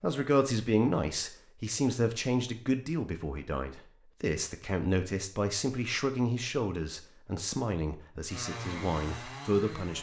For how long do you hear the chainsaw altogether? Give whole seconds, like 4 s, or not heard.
2 s.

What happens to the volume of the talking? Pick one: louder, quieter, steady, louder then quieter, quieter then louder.
quieter.